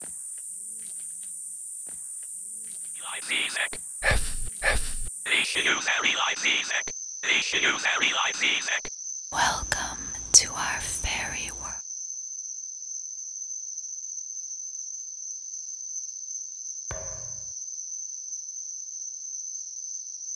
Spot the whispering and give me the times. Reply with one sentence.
You can hear the whispering from 3.0 to 11.8 s.